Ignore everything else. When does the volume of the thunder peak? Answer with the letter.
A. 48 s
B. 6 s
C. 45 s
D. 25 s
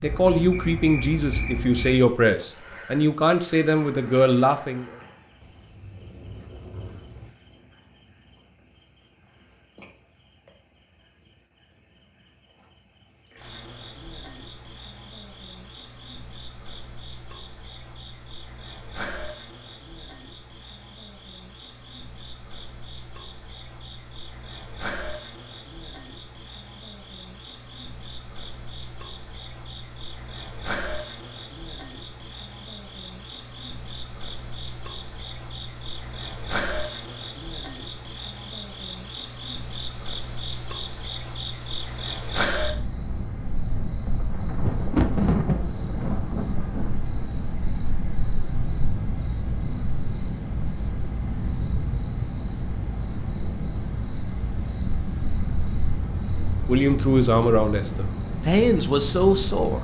C.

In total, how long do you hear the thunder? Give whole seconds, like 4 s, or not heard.
5 s.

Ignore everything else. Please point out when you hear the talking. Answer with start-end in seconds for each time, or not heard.
0.0-4.8, 56.6-59.8.